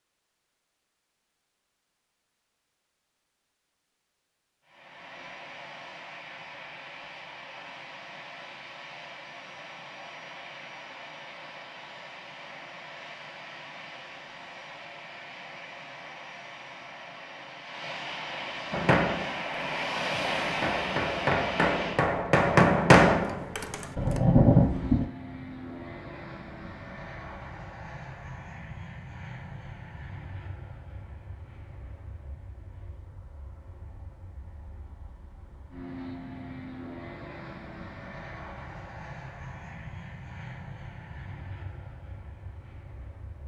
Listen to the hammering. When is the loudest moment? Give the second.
23 s.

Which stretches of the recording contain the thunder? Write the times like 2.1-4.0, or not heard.
23.9-25.1.